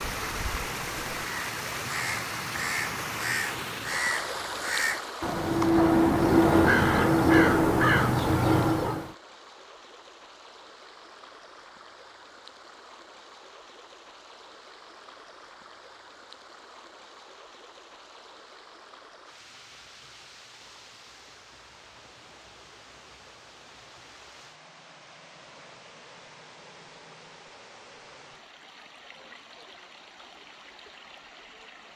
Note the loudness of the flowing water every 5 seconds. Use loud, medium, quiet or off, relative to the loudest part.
loud, medium, quiet, quiet, quiet, quiet, quiet.